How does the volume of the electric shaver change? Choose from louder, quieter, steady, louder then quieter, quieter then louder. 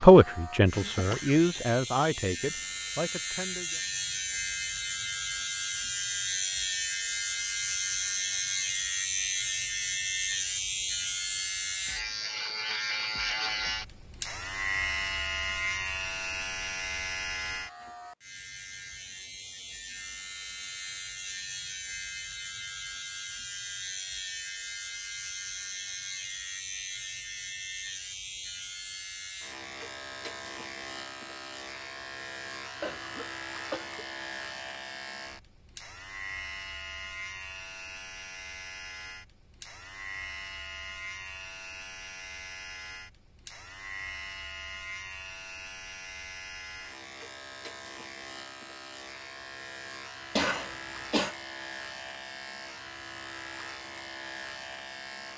quieter.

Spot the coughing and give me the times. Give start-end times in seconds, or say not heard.
0.7-1.7, 32.8-34.0, 50.4-51.4.